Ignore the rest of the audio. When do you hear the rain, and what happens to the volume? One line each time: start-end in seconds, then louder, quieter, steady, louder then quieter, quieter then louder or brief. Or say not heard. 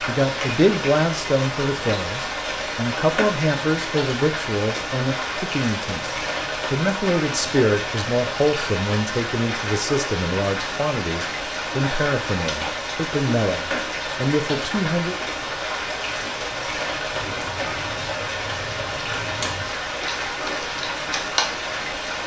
0.0-22.2 steady.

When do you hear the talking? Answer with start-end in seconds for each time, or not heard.
0.1-6.1, 6.7-15.2.